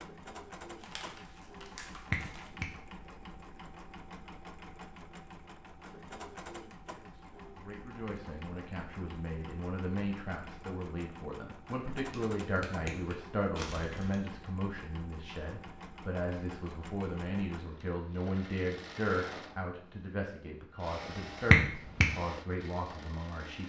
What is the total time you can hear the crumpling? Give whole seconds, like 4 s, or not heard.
2 s.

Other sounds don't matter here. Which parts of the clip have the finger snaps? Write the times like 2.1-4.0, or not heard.
2.1-2.7, 12.1-13.2, 21.5-22.1.